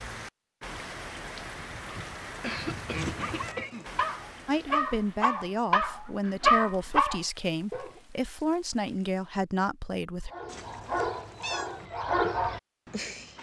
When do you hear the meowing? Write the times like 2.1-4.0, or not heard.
3.0-4.0, 10.4-11.8.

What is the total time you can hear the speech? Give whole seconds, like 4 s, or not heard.
6 s.